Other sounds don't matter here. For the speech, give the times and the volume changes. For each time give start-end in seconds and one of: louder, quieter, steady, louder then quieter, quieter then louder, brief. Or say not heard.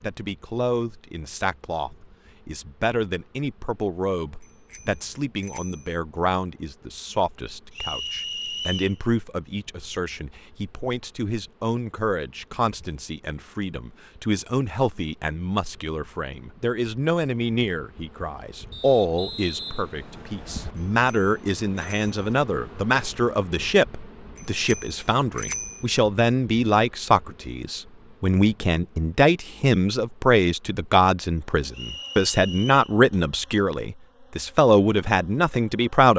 0.0-36.1 louder.